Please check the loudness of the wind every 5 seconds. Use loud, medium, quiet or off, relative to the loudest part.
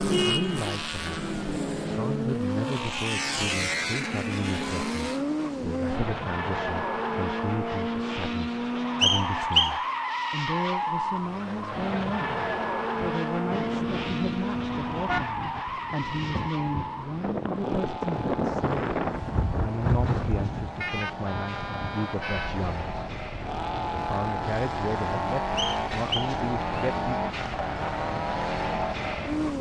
off, off, medium, loud, medium, medium.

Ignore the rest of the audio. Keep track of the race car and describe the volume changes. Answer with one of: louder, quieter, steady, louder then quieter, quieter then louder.
quieter then louder.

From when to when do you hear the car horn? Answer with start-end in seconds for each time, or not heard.
0.1-0.7, 15.1-15.8, 20.8-22.6.